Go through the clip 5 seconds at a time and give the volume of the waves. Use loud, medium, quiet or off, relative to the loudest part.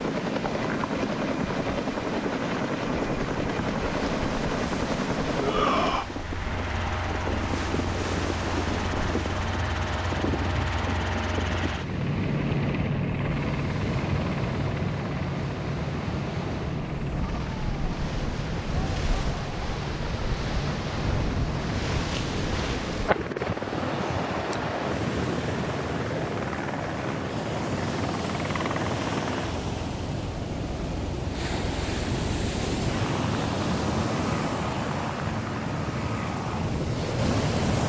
medium, medium, medium, medium, loud, loud, loud, loud.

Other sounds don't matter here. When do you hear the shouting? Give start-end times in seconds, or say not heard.
5.4-6.1.